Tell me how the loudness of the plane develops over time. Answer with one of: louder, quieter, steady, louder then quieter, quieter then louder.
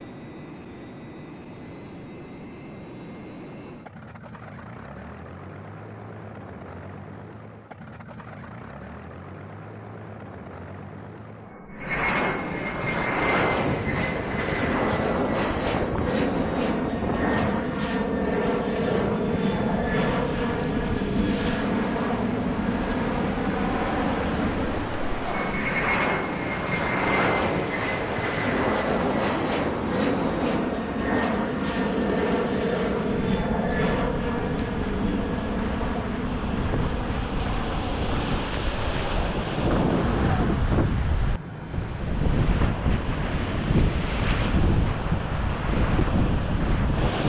louder then quieter.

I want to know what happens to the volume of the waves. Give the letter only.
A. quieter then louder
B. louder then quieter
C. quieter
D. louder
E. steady
D.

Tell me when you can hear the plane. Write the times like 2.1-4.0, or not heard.
0.0-47.2.